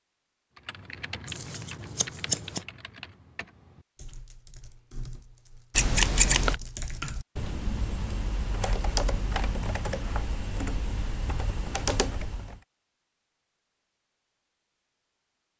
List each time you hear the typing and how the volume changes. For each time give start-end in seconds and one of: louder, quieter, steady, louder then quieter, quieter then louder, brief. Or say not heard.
0.6-12.6 quieter then louder.